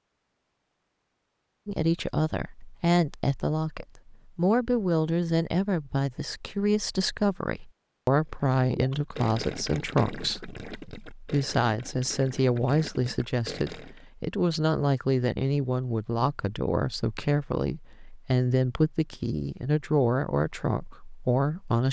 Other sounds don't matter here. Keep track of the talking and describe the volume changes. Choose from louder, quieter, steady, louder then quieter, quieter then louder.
steady.